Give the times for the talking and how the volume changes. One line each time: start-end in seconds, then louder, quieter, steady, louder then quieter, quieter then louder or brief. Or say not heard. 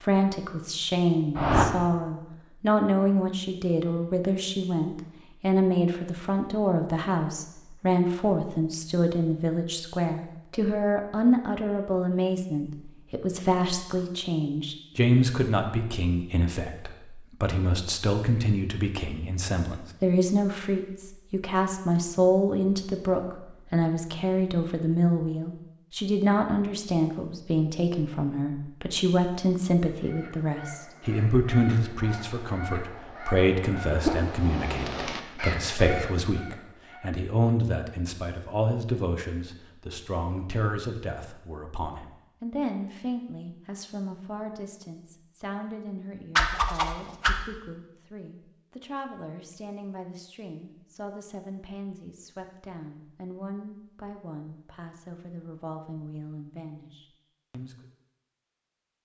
0.0-57.9 quieter.